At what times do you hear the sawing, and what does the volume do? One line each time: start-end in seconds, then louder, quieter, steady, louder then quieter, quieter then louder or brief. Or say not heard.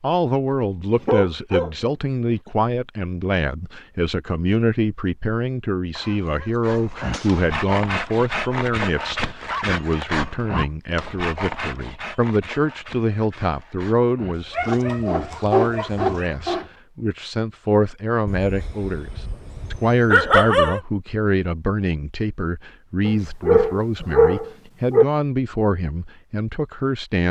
6.6-16.7 quieter then louder.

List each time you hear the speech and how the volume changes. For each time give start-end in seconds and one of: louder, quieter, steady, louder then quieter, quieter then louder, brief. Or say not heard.
0.0-27.2 steady.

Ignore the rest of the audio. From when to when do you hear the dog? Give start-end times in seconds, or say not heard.
1.0-1.9, 6.0-7.6, 9.4-10.8, 14.3-16.3, 18.2-20.8, 23.1-25.1.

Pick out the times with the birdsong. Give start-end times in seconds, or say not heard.
not heard.